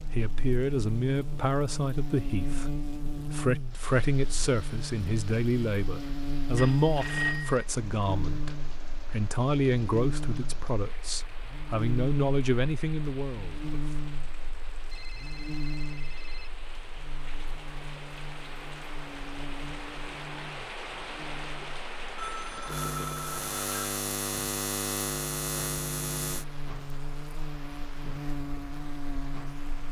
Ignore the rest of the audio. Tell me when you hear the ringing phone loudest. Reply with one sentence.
The volume of the ringing phone peaks at 7 seconds.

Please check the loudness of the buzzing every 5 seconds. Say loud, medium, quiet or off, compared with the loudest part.
loud, loud, loud, medium, loud, loud.